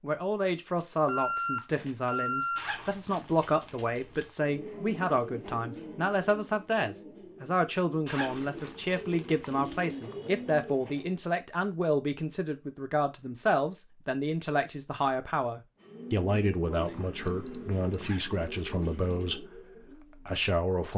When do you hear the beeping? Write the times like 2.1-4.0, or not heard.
1.1-2.6, 16.9-18.2.